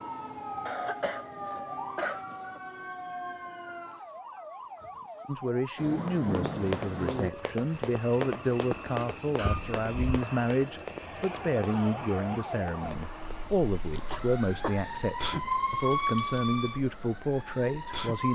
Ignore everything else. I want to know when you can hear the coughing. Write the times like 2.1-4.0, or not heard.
0.7-2.6, 9.3-10.2, 14.1-14.8.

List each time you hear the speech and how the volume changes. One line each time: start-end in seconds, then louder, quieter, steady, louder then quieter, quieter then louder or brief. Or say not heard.
5.2-18.3 steady.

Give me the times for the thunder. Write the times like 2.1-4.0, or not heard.
5.8-7.3.